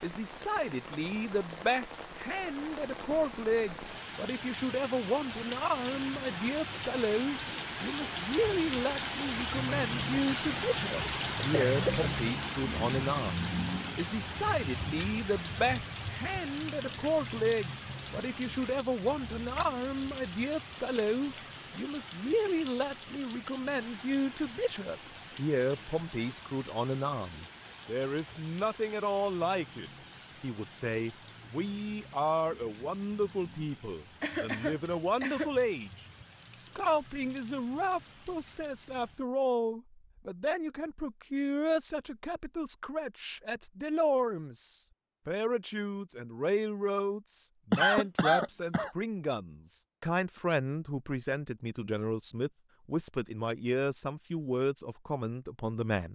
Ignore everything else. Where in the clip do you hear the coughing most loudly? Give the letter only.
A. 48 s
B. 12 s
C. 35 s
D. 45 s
A.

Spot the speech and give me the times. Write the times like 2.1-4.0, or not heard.
0.0-56.1.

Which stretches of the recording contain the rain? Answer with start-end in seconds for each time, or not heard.
0.0-39.2.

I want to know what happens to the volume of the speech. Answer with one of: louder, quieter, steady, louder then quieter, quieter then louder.
steady.